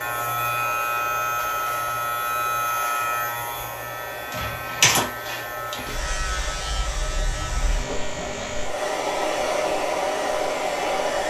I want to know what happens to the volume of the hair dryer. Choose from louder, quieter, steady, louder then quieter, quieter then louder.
louder.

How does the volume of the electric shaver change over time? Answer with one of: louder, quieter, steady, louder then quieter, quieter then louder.
quieter.